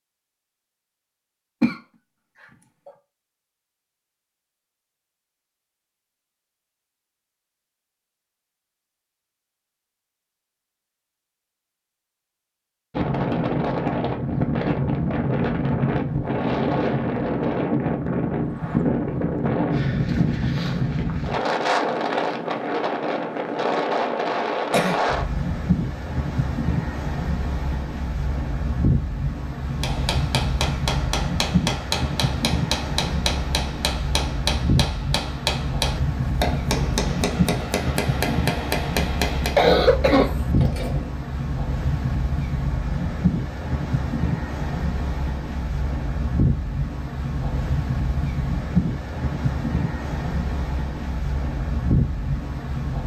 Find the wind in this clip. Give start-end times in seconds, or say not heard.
12.9-53.0.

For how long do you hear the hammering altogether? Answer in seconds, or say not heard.
10 s.